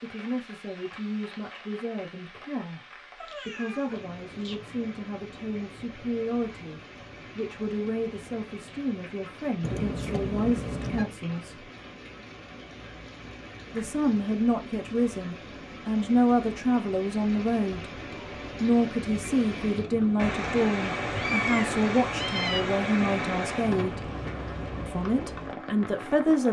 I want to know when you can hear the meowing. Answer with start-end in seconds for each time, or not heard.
3.1-4.5, 9.6-11.1, 21.1-22.6.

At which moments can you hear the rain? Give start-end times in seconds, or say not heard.
0.0-26.4.